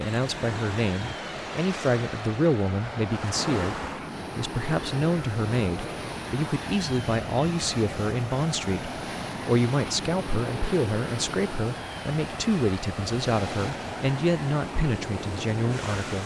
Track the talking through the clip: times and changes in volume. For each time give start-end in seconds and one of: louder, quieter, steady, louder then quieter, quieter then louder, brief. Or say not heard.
0.0-16.2 steady.